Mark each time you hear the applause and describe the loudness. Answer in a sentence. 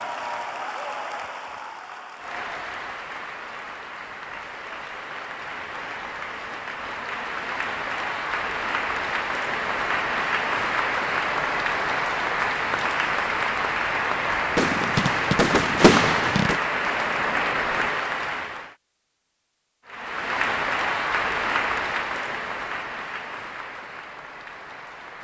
You can hear the applause from 0.0 to 18.8 s, getting louder; and from 19.9 to 25.1 s, getting quieter.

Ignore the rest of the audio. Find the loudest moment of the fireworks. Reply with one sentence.
The volume of the fireworks peaks at 16 seconds.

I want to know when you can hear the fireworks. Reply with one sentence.
You can hear the fireworks from 14.3 to 16.6 s.